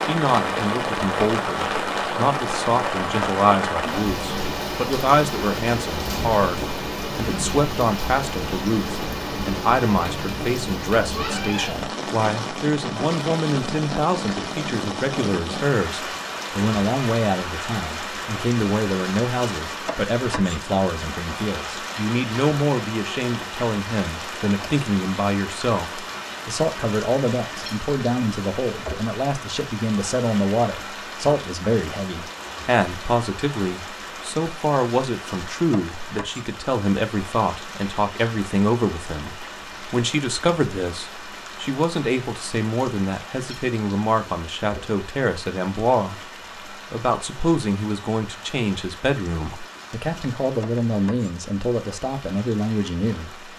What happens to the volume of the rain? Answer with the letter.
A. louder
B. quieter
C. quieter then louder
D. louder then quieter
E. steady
B.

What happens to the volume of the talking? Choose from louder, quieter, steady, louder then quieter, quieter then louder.
steady.